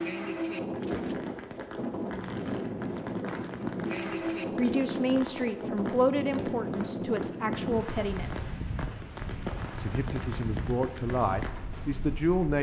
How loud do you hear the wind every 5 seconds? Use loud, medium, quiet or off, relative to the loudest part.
loud, loud, medium.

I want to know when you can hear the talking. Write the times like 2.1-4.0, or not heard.
4.0-8.4, 9.8-12.5.